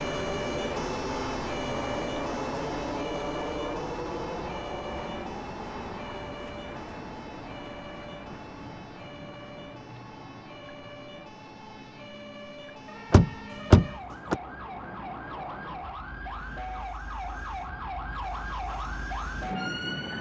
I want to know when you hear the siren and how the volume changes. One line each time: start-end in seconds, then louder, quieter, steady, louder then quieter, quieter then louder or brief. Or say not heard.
0.0-20.1 quieter then louder.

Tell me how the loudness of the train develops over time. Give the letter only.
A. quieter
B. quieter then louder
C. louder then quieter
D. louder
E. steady
A.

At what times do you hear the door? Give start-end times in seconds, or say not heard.
13.1-14.3.